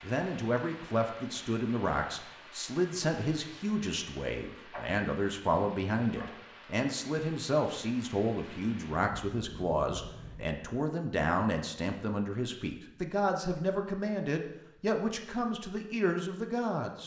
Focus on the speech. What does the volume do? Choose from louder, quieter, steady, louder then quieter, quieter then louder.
steady.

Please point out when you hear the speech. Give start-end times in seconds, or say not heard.
0.0-17.0.